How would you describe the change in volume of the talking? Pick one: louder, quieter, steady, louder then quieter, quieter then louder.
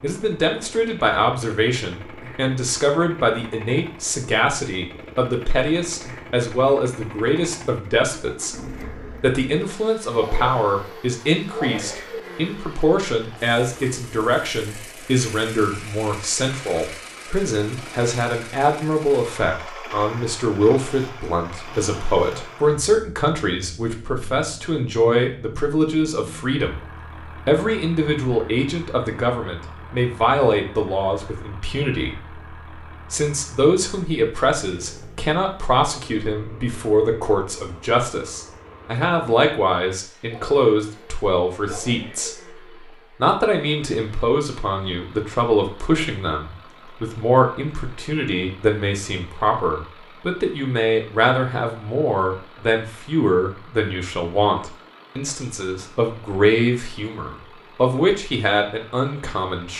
steady.